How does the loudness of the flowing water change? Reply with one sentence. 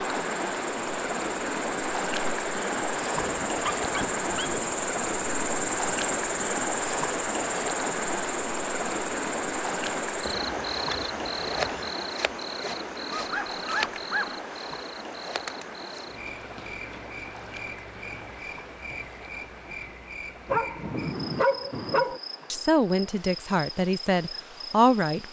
The loudness of the flowing water goes down.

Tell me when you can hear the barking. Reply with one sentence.
You can hear the barking from 2.9 to 4.8 s, from 13.1 to 14.4 s and from 20.4 to 22.2 s.